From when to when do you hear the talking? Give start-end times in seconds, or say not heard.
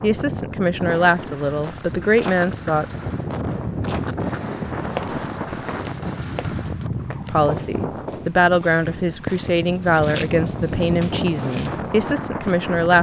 0.0-3.0, 7.3-12.9.